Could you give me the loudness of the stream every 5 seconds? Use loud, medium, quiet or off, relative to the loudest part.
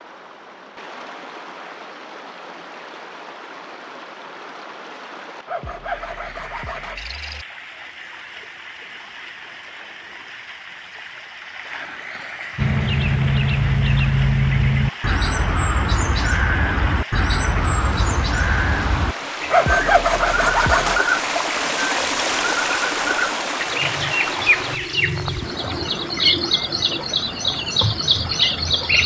quiet, quiet, medium, medium, loud, medium.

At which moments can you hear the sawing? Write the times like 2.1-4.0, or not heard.
5.5-7.5, 19.5-21.0.